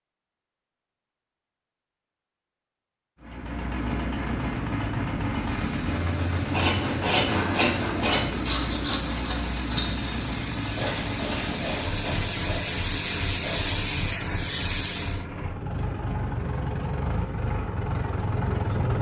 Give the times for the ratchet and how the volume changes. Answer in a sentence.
You can hear the ratchet from 5.2 to 15.2 s, getting louder.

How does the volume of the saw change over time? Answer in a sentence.
The volume of the saw goes down.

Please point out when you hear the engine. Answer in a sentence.
You can hear the engine from 3.2 to 18.9 s.